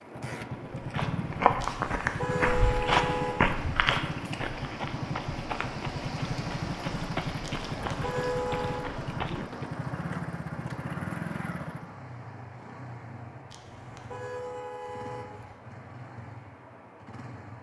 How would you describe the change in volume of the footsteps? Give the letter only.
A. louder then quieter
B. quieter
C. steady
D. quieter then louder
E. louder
B.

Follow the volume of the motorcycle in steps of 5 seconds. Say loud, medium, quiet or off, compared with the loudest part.
loud, loud, loud, medium.